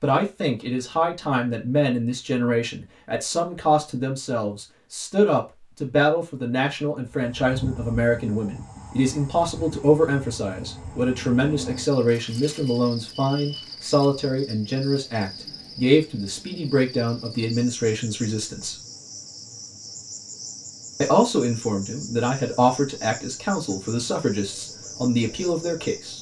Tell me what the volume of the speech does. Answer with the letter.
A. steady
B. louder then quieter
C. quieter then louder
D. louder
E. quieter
A.